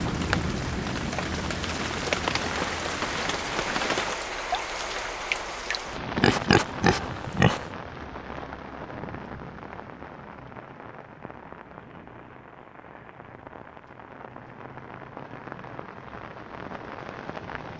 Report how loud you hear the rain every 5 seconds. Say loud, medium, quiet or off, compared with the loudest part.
loud, medium, quiet, medium.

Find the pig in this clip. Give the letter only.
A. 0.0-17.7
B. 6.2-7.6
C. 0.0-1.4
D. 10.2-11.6
B.